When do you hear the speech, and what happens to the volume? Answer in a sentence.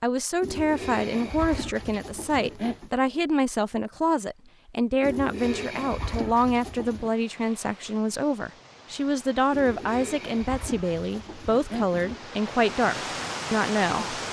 The speech can be heard from 0.0 to 14.2 s, at a steady volume.